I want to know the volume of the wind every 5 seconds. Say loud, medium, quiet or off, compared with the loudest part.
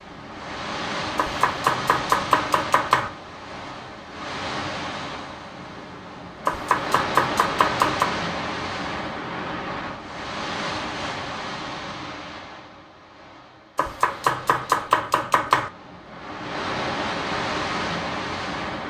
loud, loud, medium, loud.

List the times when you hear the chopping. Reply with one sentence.
The chopping can be heard from 1.1 to 3.1 s, from 6.5 to 8.1 s and from 13.8 to 15.7 s.